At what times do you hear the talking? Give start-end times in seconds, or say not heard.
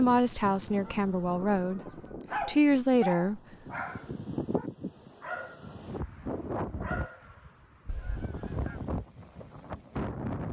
0.0-1.8, 2.4-3.4.